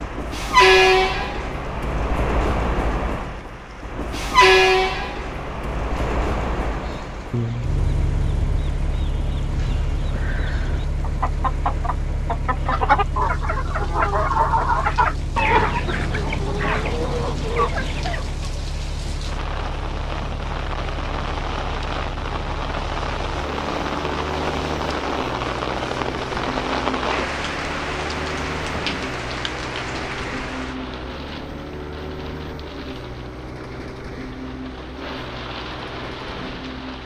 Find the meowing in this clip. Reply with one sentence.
You can't hear the meowing here.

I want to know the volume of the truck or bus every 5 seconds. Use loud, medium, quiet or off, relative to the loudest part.
loud, medium, quiet, quiet, quiet, quiet, quiet, quiet.